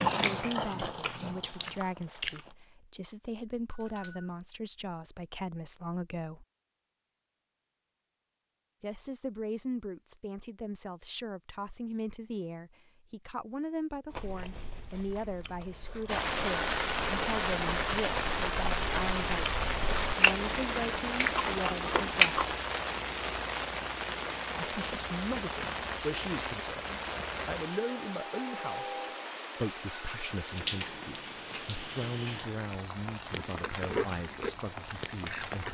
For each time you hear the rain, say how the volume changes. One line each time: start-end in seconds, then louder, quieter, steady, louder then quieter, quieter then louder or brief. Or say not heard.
16.1-35.6 quieter.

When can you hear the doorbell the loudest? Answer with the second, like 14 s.
17 s.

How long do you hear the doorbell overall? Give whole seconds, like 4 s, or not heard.
4 s.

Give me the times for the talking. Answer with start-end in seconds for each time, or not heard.
0.2-6.5, 8.8-22.4, 24.6-35.6.